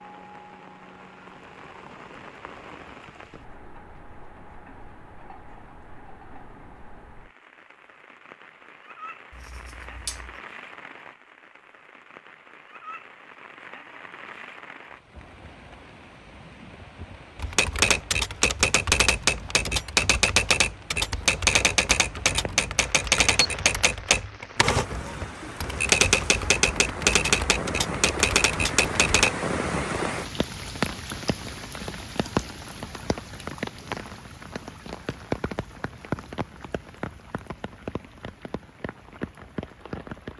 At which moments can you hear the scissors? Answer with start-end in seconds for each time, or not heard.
9.3-10.4.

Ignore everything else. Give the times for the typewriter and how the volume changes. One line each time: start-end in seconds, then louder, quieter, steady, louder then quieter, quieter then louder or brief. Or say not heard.
17.4-29.3 steady.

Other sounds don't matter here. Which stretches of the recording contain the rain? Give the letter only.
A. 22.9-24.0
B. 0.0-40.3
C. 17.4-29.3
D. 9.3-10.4
B.